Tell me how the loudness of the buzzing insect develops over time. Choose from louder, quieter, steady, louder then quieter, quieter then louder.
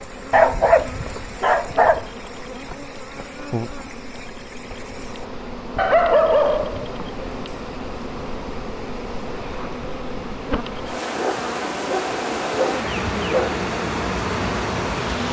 louder.